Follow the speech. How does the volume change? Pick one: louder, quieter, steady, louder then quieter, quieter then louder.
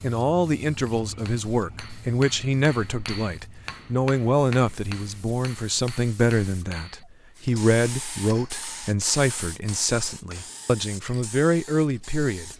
steady.